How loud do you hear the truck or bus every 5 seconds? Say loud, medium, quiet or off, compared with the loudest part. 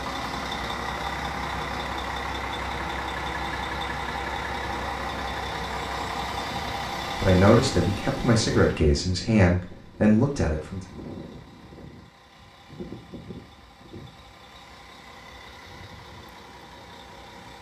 loud, loud, quiet, quiet.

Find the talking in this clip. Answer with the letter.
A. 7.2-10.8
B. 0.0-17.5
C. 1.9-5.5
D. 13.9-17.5
A.